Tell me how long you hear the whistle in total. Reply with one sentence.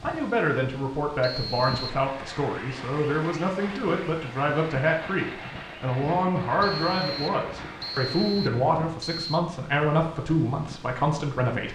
The whistle can be heard for 4 seconds in total.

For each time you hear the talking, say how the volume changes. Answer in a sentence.
The talking can be heard from 0.0 to 11.7 s, at a steady volume.